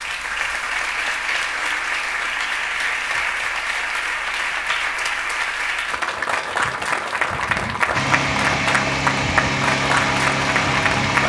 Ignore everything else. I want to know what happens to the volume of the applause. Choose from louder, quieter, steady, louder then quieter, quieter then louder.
steady.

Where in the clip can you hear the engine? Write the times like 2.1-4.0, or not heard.
7.9-11.2.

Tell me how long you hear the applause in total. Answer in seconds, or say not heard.
11 s.